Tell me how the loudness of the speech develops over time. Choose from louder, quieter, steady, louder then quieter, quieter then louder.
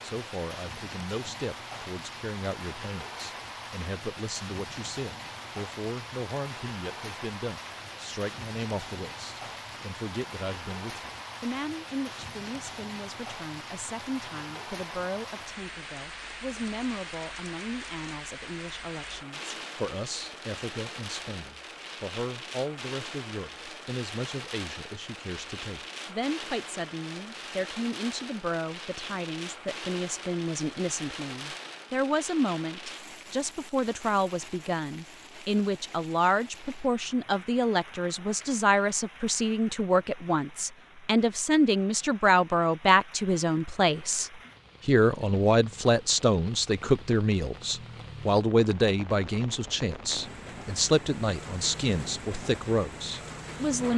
louder.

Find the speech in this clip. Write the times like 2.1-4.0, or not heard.
0.0-53.9.